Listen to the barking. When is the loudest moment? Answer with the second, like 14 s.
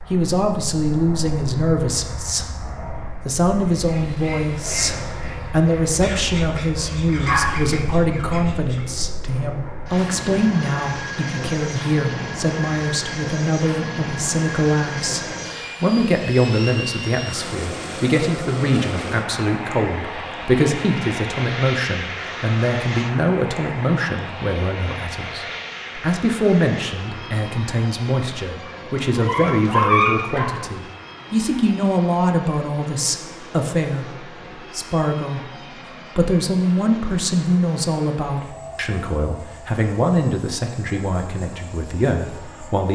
30 s.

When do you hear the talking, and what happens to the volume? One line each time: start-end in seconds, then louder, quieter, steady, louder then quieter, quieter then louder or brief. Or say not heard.
0.1-42.8 steady.